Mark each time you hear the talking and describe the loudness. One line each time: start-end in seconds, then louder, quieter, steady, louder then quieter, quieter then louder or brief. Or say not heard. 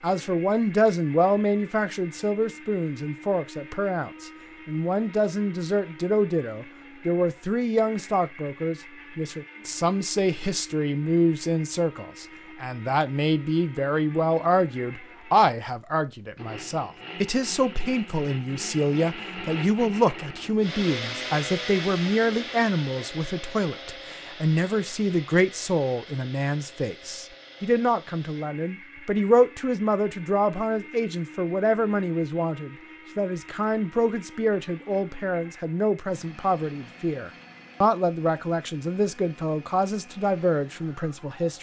0.0-41.5 steady.